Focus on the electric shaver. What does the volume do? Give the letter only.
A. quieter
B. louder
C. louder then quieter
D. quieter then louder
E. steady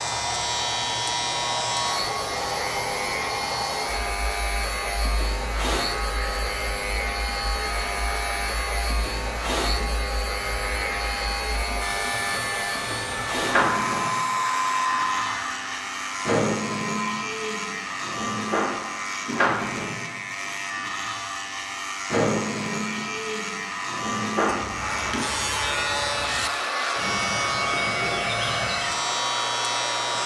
E.